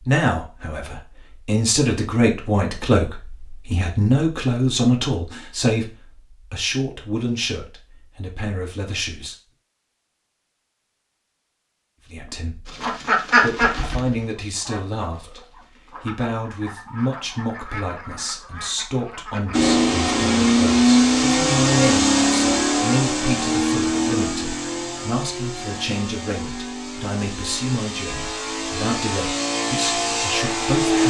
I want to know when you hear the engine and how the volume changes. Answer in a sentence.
You can hear the engine from 19.5 to 31.0 s, getting quieter then louder.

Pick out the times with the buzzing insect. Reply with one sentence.
You can't hear the buzzing insect here.